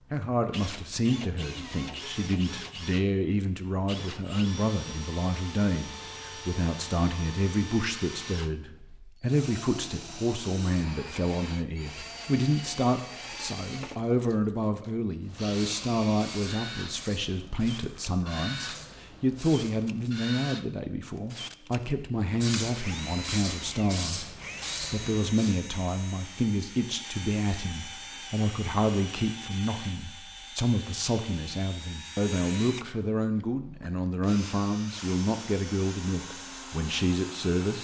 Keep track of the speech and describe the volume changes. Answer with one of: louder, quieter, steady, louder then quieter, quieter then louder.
steady.